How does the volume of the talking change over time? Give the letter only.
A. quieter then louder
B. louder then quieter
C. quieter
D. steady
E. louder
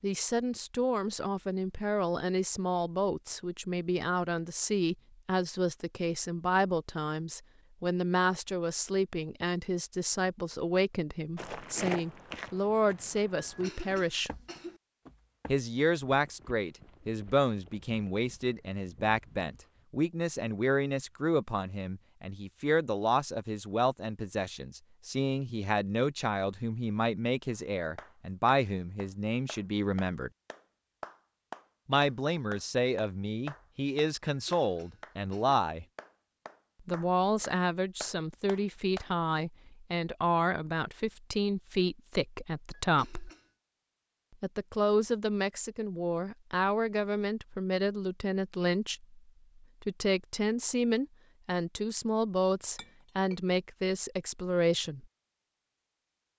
D.